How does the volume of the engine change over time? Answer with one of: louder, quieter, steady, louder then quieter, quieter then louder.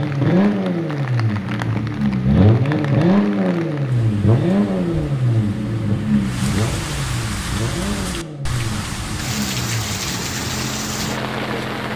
quieter.